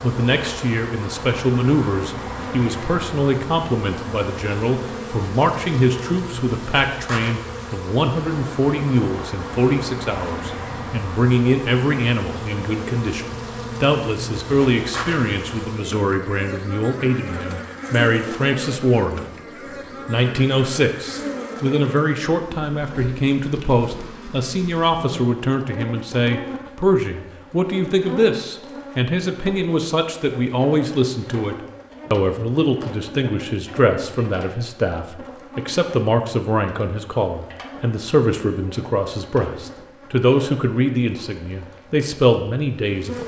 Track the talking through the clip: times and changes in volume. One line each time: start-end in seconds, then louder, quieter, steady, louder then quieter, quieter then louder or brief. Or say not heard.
0.0-19.2 steady
20.1-43.2 steady.